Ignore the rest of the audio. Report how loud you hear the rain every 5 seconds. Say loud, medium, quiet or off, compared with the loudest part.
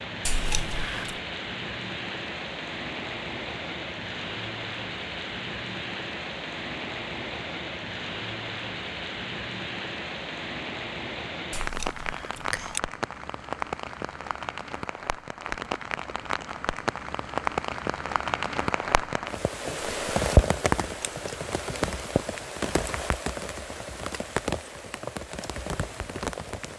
medium, medium, medium, loud, loud, medium.